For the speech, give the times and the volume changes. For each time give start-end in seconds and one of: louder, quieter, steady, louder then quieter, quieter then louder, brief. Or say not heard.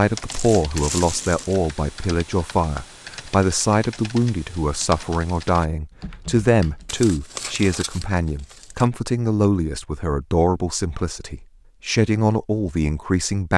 0.0-13.5 steady.